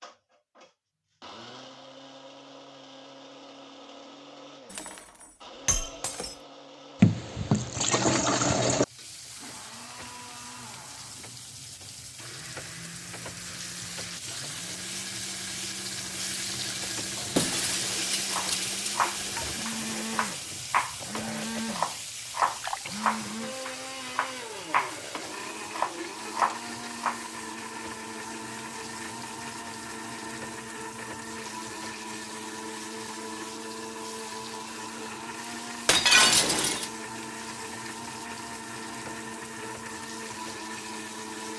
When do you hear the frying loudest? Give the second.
18 s.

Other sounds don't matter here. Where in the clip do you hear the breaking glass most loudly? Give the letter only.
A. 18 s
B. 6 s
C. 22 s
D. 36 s
D.